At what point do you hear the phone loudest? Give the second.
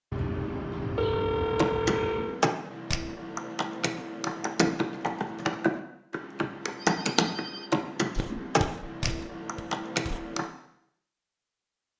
1 s.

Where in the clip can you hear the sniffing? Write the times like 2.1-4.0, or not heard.
not heard.